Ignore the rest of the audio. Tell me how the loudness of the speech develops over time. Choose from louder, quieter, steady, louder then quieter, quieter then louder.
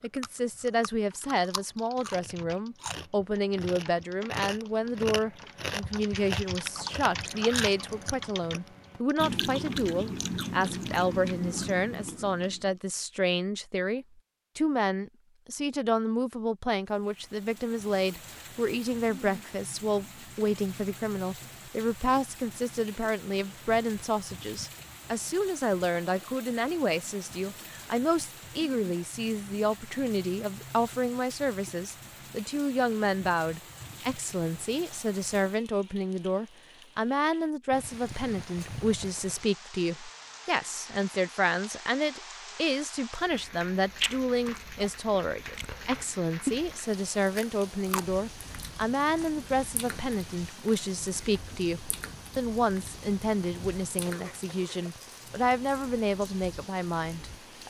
steady.